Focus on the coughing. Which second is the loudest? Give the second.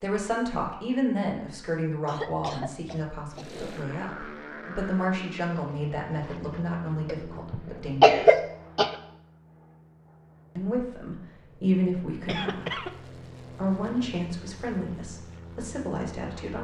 8 s.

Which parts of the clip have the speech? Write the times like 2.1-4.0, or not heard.
0.0-8.4, 10.6-12.8, 13.4-16.5.